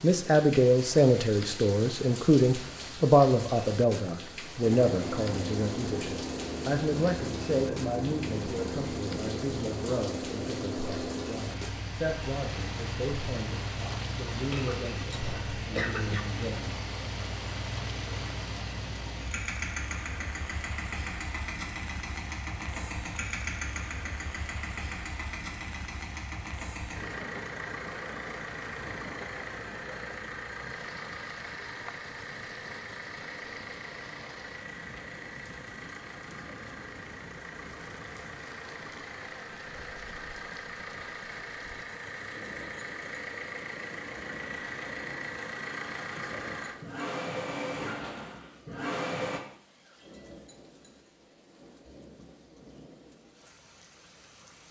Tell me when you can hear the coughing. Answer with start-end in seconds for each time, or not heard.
14.3-16.2.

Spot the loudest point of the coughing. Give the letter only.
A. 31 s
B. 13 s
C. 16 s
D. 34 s
C.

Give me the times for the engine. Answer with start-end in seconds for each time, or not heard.
4.6-49.4.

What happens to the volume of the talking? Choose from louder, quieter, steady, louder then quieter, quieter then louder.
quieter.